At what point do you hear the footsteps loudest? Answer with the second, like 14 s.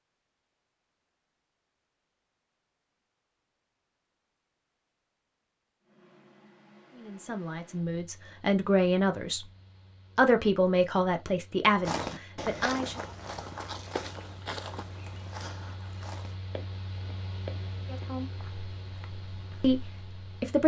12 s.